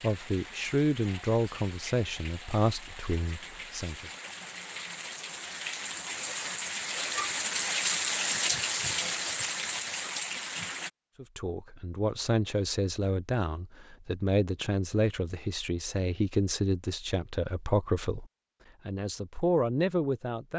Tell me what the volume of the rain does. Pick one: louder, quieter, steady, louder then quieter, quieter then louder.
louder.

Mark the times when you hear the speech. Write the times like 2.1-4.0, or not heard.
0.0-4.1, 11.2-18.2, 18.9-20.5.